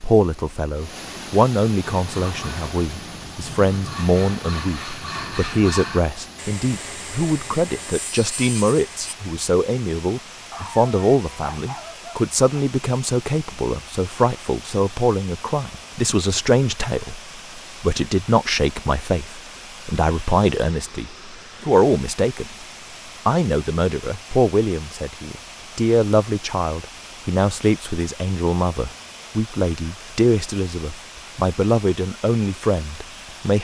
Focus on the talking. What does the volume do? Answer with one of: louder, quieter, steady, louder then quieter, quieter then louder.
steady.